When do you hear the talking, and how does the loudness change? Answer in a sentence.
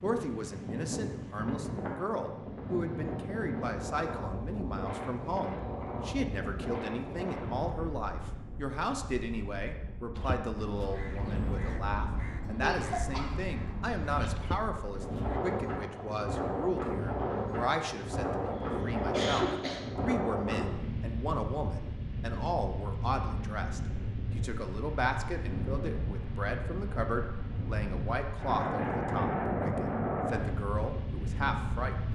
You can hear the talking from 0.0 to 32.1 s, at a steady volume.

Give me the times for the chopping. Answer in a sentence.
You can't hear the chopping here.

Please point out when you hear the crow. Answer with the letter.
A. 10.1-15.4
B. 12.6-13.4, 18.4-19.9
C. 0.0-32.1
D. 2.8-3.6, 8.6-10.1
A.